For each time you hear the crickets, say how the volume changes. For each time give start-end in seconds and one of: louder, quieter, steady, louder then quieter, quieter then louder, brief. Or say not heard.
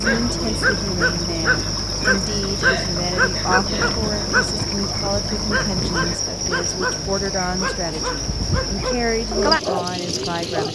0.0-10.7 steady.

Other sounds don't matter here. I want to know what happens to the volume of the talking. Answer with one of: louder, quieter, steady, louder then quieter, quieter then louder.
steady.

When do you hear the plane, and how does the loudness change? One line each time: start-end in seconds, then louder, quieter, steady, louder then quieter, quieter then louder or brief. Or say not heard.
not heard.